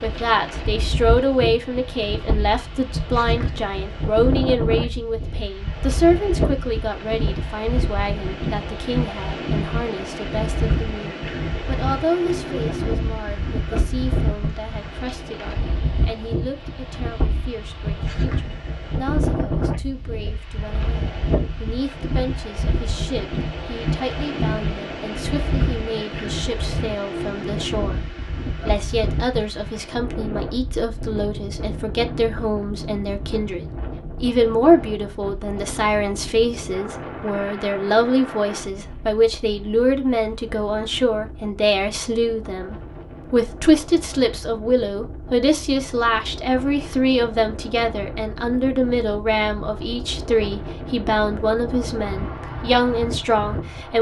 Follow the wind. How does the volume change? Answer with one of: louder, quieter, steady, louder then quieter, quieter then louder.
quieter.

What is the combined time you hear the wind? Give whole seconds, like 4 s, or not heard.
54 s.